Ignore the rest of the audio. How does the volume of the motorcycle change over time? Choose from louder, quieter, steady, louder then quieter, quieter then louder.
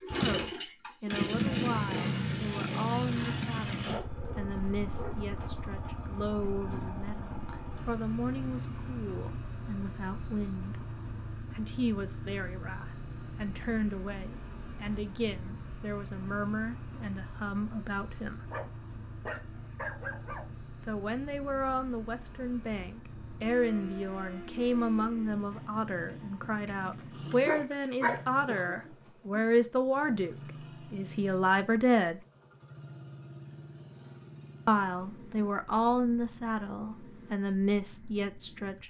quieter.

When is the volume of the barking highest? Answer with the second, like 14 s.
28 s.